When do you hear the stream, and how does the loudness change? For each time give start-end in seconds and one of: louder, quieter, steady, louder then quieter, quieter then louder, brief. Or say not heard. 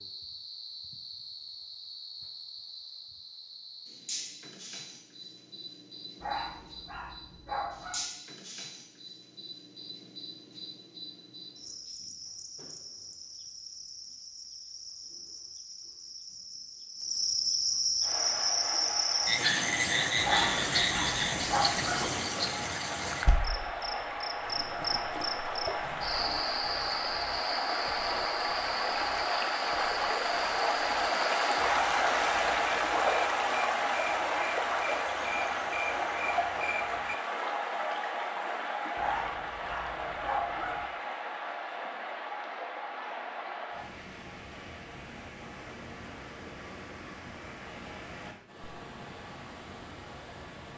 18.0-50.7 louder then quieter.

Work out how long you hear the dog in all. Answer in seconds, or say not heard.
7 s.